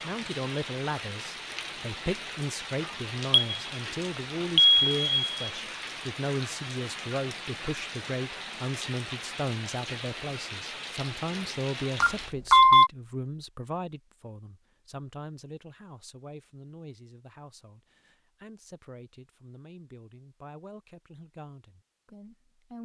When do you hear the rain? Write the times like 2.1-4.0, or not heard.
0.0-12.3.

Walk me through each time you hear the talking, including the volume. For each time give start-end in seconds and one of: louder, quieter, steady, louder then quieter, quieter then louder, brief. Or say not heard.
0.0-22.8 quieter.